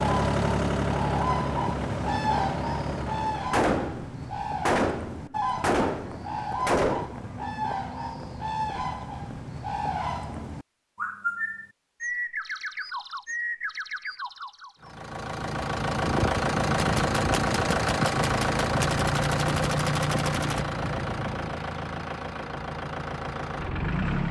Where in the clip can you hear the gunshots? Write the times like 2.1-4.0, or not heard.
3.5-7.2, 16.8-20.6.